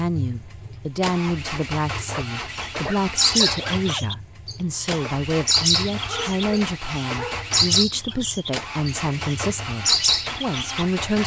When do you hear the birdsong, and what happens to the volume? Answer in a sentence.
The birdsong can be heard from 2.5 to 11.2 s, at a steady volume.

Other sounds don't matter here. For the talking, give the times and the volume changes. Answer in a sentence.
You can hear the talking from 0.0 to 11.2 s, at a steady volume.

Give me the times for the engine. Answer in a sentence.
The engine can be heard from 0.0 to 11.2 s.